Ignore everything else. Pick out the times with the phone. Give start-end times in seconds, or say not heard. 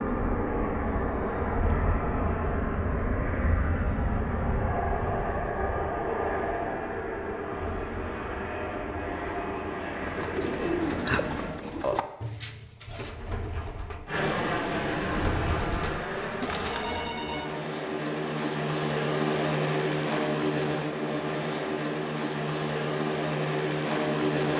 16.6-17.4.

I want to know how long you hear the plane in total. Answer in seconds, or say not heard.
22 s.